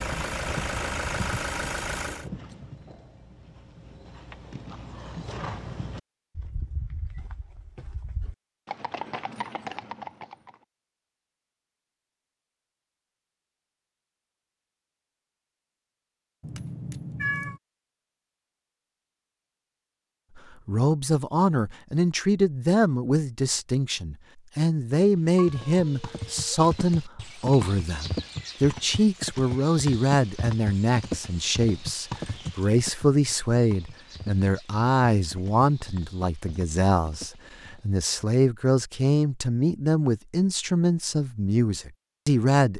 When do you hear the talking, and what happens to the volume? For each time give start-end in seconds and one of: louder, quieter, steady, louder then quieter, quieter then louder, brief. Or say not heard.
20.4-42.7 steady.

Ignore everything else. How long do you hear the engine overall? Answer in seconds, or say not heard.
2 s.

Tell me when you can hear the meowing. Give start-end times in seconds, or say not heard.
16.4-17.6, 25.4-26.6.